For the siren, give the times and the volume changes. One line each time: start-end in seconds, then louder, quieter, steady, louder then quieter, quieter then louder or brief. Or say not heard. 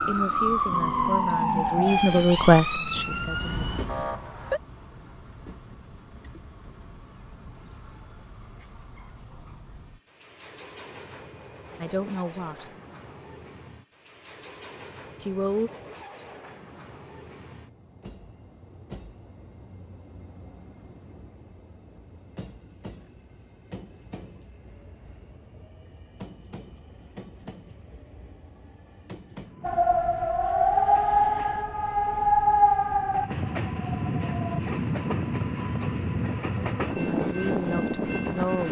0.0-4.6 quieter
29.6-34.6 quieter.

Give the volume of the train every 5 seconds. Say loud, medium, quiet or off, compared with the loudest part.
medium, quiet, quiet, quiet, quiet, quiet, medium, loud.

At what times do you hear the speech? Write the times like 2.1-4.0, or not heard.
0.1-3.6, 11.8-12.7, 15.2-15.7, 37.0-38.6.